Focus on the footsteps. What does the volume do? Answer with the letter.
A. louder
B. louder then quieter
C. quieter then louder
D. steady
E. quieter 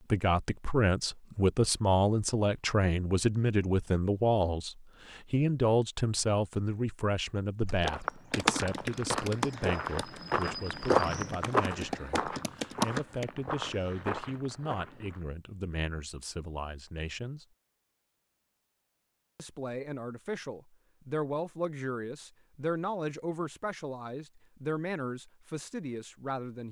B.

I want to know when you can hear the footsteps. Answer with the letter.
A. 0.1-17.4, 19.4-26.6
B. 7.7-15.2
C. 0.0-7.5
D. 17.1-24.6
B.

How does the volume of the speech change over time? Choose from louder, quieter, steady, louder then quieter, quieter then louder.
quieter.